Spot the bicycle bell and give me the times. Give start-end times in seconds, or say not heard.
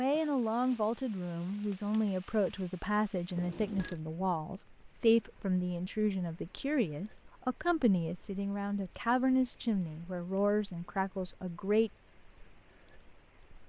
3.4-4.0.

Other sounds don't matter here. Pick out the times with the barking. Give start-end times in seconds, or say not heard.
not heard.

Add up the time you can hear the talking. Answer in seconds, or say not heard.
12 s.